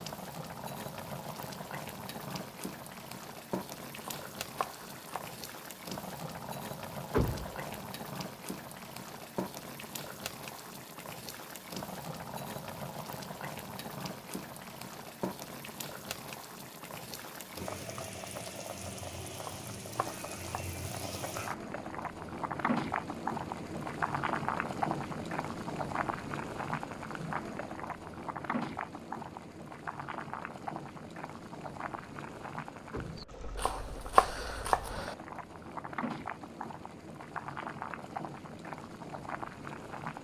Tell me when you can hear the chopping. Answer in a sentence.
You can hear the chopping from 4.0 to 5.4 s, from 19.4 to 20.8 s and from 33.5 to 35.1 s.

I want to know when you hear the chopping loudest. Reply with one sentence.
The loudest moment of the chopping is at 34 seconds.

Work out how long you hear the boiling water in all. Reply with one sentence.
You can hear the boiling water for 40 seconds altogether.